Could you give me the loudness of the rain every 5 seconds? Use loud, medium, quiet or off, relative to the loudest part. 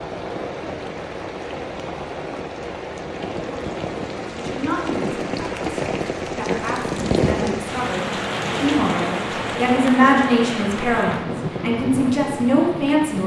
medium, loud, loud.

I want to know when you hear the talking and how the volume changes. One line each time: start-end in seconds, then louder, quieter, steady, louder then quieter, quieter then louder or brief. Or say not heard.
4.3-13.2 louder.